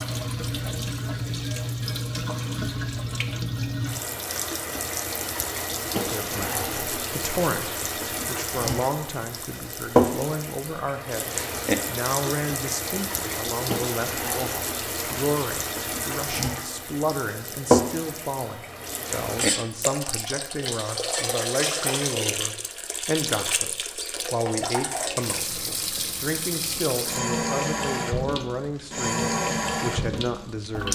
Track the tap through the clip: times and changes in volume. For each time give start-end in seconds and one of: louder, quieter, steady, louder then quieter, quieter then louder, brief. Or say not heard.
0.0-30.9 steady.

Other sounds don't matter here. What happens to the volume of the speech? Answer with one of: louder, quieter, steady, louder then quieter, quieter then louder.
steady.